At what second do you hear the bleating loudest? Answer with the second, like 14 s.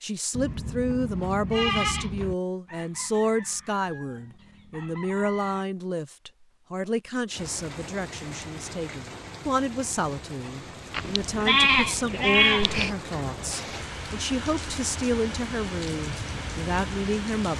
12 s.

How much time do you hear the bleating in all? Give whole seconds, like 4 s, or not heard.
4 s.